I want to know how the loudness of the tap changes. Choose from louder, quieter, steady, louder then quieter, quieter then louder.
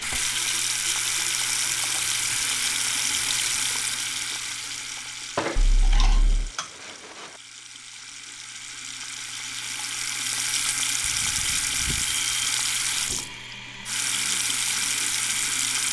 quieter then louder.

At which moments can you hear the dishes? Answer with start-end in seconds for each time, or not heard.
5.3-7.4.